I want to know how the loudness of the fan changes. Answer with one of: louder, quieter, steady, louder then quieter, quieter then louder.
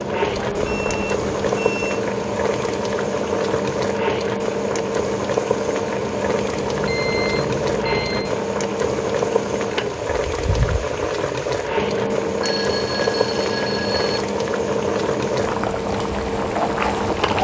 steady.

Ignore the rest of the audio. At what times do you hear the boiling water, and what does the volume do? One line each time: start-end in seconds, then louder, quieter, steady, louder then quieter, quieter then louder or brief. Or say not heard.
0.0-17.3 steady.